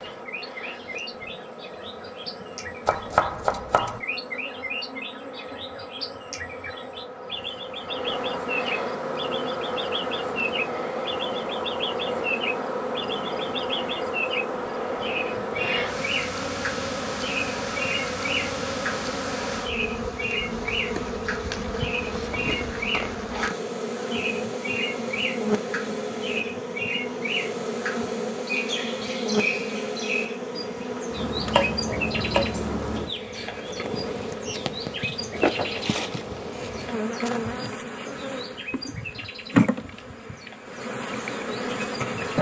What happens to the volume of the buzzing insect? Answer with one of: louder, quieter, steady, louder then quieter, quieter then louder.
louder.